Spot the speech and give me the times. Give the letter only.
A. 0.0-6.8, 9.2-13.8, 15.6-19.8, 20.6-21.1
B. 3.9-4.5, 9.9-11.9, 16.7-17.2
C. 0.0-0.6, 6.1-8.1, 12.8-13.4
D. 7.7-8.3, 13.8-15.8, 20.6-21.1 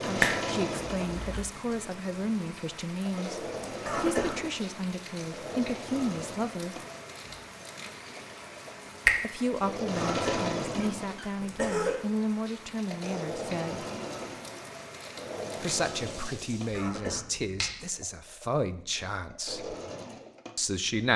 A.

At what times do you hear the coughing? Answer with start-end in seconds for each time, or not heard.
3.9-4.5, 9.9-11.9, 16.7-17.2.